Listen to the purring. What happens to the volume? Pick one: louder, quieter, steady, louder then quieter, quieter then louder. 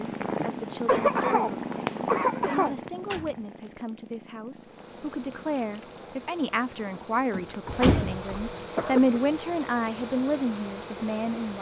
quieter.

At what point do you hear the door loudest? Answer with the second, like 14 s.
8 s.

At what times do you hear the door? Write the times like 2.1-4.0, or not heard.
2.6-3.4, 7.3-8.2.